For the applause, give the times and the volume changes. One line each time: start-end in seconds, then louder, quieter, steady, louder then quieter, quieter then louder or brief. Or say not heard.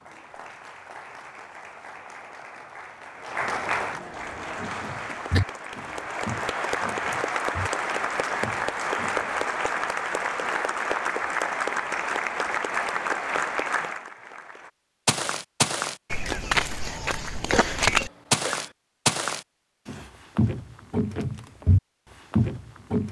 0.0-14.7 louder.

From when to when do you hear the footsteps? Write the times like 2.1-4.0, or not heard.
4.5-9.3, 15.1-23.0.